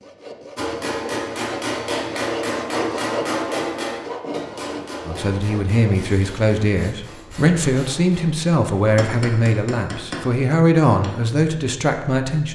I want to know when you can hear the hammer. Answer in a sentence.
The hammer can be heard from 0.6 to 11.1 s.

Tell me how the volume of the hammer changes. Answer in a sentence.
The loudness of the hammer goes down, then up.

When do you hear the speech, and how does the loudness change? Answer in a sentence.
You can hear the speech from 5.0 to 12.5 s, at a steady volume.